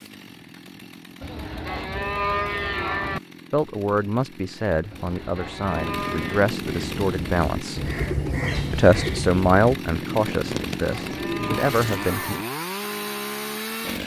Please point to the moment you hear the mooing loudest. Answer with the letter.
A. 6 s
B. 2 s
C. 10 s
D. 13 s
B.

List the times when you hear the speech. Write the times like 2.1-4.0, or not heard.
3.5-7.9, 8.7-12.3.